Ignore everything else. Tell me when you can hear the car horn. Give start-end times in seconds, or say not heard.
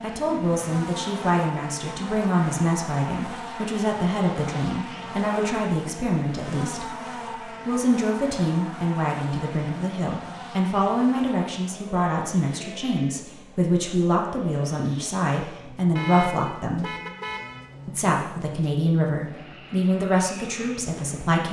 15.9-17.8.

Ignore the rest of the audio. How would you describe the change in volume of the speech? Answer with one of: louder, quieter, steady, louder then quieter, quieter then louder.
steady.